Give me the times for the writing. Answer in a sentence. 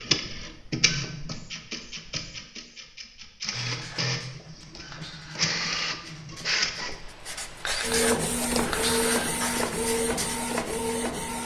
The writing can be heard from 3.5 to 10.9 s.